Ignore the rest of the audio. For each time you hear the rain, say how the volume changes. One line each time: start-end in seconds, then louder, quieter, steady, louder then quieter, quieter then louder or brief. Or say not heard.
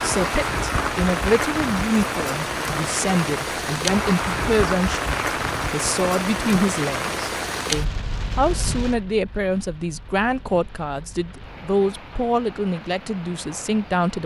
0.0-14.2 quieter.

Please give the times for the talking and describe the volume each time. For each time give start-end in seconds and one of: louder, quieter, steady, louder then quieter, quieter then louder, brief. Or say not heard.
0.0-14.2 steady.